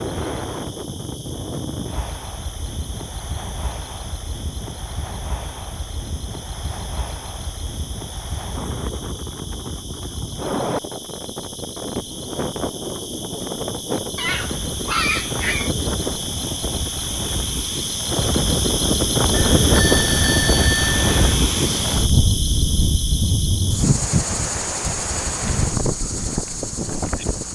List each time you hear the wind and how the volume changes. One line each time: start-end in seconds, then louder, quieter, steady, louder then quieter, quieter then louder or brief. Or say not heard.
0.0-27.5 louder.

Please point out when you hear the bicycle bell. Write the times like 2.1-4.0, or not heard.
19.3-21.4.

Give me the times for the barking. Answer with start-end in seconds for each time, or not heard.
14.2-15.7.